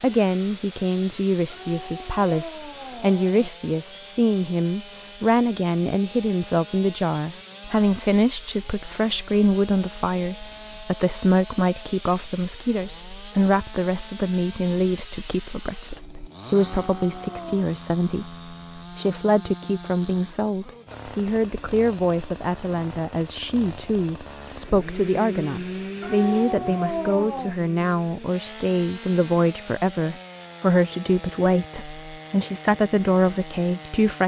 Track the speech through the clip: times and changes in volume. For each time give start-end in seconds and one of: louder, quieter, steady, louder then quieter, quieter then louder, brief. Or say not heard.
0.0-34.2 steady.